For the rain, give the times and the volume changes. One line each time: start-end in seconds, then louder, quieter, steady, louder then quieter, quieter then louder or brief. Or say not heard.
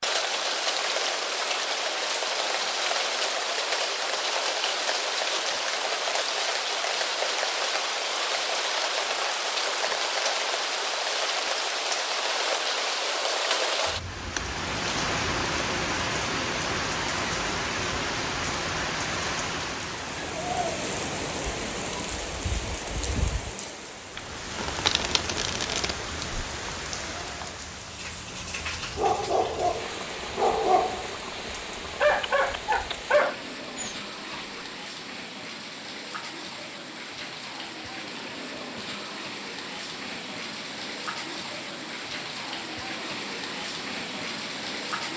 0.0-45.1 quieter.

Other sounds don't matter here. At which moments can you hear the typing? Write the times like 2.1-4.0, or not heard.
not heard.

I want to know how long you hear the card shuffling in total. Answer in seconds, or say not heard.
2 s.